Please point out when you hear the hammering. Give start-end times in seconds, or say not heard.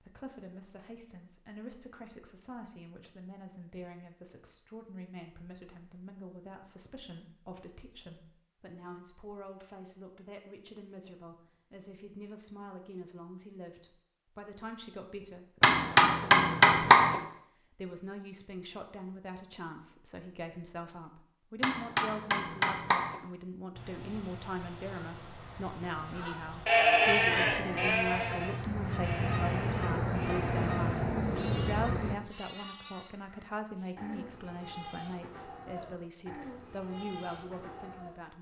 15.6-17.1, 21.6-23.1.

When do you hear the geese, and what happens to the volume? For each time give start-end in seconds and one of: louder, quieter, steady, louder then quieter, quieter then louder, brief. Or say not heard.
23.7-32.1 louder.